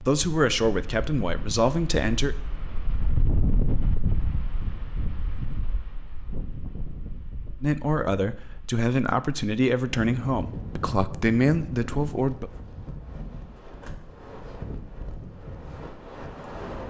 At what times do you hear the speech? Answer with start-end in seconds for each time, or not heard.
0.0-2.4, 7.6-12.5.